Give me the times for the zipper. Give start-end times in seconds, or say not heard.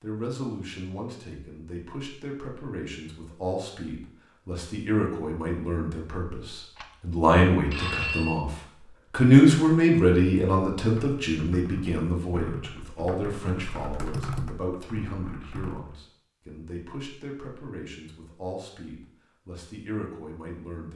not heard.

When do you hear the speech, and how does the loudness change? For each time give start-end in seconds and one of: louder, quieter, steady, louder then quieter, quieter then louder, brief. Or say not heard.
0.0-20.9 louder then quieter.